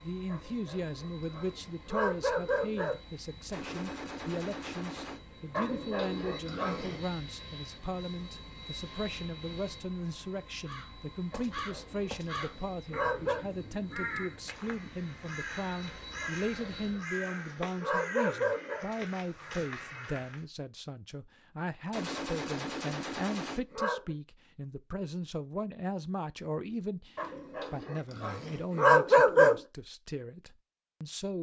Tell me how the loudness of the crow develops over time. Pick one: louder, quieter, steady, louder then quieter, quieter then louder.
steady.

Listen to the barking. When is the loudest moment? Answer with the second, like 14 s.
29 s.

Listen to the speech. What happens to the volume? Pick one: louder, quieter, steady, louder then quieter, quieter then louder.
steady.